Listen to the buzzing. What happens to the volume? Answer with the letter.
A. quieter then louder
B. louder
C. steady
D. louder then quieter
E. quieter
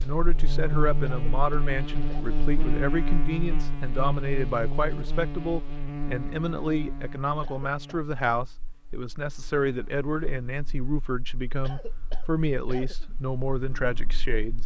E.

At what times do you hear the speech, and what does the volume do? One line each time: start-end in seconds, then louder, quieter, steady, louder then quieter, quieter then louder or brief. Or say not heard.
0.0-14.6 steady.